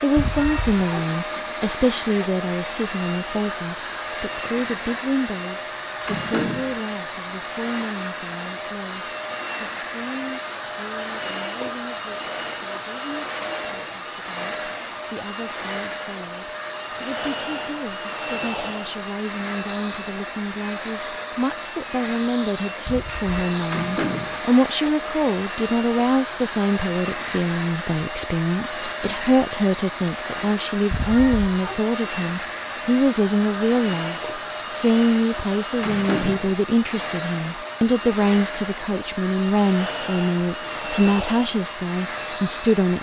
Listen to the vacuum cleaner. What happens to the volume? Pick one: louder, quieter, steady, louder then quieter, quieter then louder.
steady.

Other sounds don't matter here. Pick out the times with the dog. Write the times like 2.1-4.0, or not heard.
not heard.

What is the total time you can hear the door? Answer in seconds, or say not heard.
2 s.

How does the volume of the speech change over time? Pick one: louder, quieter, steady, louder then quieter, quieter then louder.
quieter then louder.